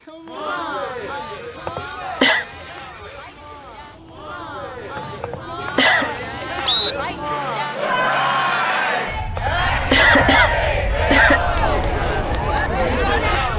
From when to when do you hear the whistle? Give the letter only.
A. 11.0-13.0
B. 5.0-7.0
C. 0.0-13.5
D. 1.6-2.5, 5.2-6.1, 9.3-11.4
B.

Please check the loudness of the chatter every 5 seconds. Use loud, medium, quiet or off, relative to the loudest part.
medium, loud, loud.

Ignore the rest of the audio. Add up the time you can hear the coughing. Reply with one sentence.
The coughing can be heard for 4 seconds in total.